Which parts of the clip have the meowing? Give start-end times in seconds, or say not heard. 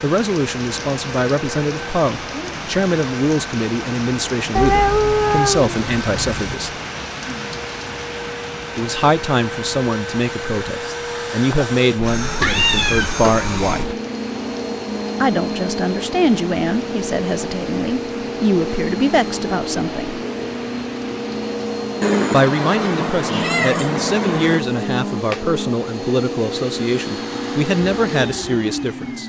4.5-6.5, 12.0-13.9, 22.0-24.6.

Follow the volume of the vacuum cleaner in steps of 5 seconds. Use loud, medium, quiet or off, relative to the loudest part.
medium, medium, loud, loud, loud, loud.